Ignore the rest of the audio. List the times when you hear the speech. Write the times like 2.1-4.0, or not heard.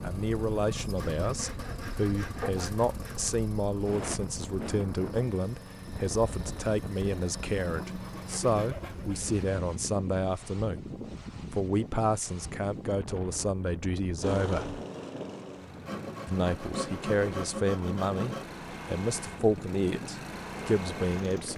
0.0-10.8, 11.5-14.8, 16.2-21.5.